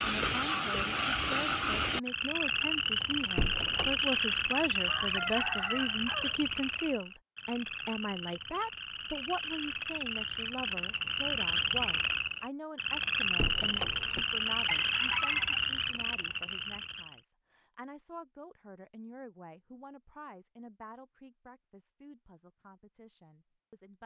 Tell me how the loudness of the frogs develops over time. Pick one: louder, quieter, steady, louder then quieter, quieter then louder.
quieter then louder.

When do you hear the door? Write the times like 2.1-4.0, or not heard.
3.0-4.0, 13.0-14.2.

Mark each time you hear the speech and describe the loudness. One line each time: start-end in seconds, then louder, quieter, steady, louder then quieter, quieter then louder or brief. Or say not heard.
0.0-24.0 quieter.